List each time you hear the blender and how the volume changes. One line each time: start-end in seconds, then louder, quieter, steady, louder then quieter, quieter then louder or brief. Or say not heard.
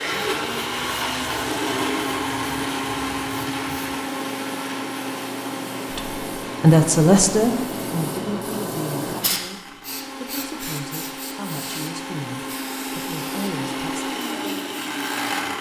0.0-15.5 quieter then louder.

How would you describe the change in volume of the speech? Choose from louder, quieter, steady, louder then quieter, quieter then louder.
quieter.